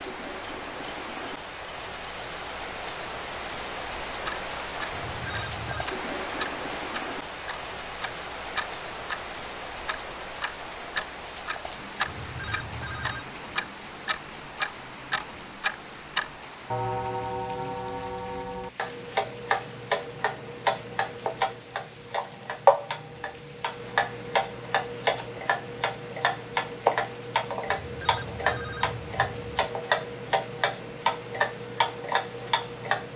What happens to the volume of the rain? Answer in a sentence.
The loudness of the rain goes down.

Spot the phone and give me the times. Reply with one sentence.
The phone can be heard from 4.9 to 5.8 s, from 12.1 to 13.2 s and from 27.6 to 29.6 s.